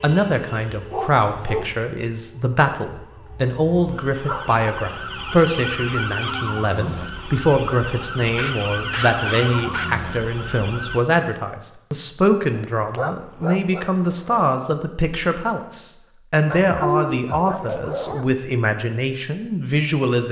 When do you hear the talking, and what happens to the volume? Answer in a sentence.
The talking can be heard from 0.0 to 20.2 s, at a steady volume.